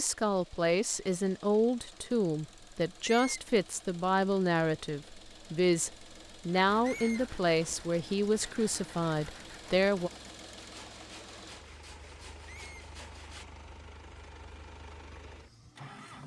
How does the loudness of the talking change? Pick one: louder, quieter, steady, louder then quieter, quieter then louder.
steady.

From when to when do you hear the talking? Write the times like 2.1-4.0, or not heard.
0.0-10.1.